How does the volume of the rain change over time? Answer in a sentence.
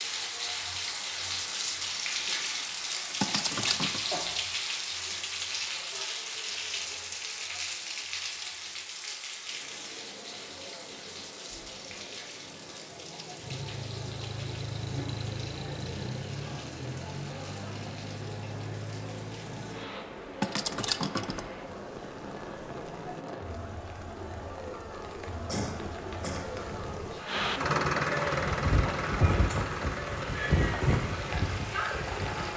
The loudness of the rain goes down, then up.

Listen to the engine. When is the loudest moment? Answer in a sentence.
The loudest moment of the engine is at 28 seconds.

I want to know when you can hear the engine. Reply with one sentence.
You can hear the engine from 13.3 to 20.1 s and from 27.2 to 32.5 s.